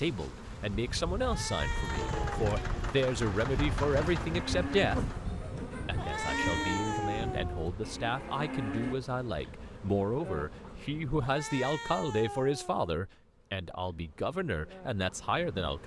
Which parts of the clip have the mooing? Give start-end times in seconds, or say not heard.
4.1-8.9.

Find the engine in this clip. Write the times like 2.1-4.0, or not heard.
1.6-5.3.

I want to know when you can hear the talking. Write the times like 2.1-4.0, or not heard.
0.0-5.0, 5.8-15.8.